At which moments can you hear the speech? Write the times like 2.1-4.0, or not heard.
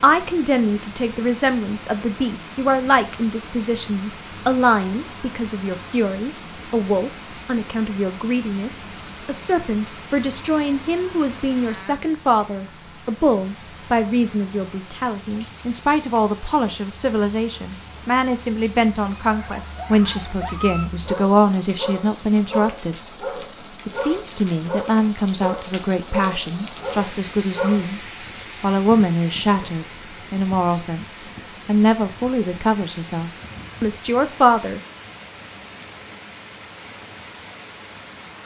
0.0-22.9, 23.9-28.0, 28.6-34.8.